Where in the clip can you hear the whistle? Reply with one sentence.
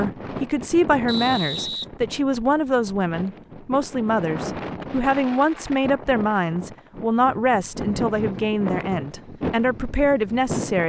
The whistle can be heard from 1.1 to 2.5 s.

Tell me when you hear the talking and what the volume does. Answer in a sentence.
The talking can be heard from 0.0 to 10.8 s, at a steady volume.